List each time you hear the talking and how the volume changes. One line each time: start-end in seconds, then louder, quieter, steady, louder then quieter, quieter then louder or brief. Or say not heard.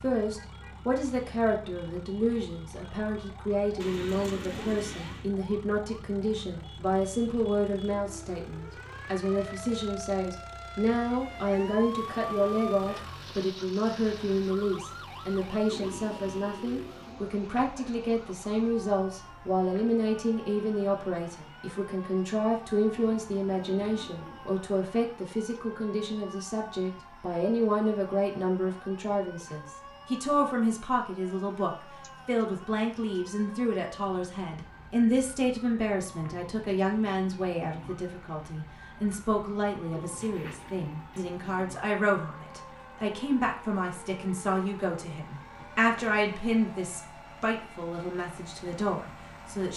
0.0-49.7 steady.